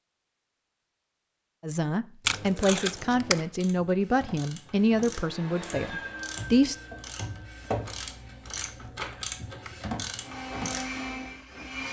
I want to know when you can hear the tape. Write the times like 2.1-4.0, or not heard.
2.2-3.5, 8.6-9.8.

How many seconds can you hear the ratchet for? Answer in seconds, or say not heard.
8 s.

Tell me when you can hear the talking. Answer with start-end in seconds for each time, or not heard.
1.6-6.8.